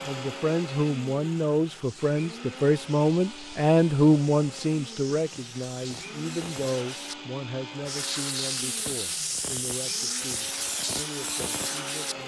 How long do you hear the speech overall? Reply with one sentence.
The speech can be heard for 12 seconds in total.